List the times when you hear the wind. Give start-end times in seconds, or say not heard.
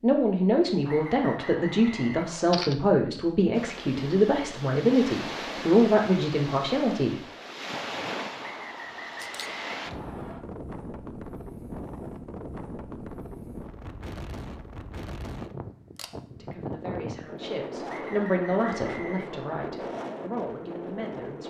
3.5-21.4.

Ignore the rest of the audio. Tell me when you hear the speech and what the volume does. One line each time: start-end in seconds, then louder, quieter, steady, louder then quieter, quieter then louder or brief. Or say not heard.
0.0-7.2 steady
16.3-21.4 louder then quieter.